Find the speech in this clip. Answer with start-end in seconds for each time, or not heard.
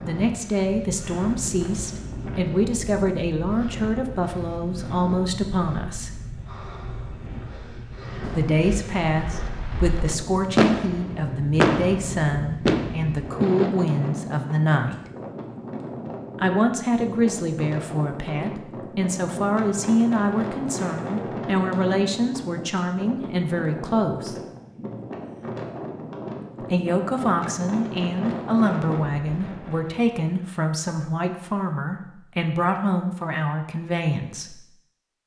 0.0-6.2, 8.3-15.1, 16.4-24.4, 26.6-34.6.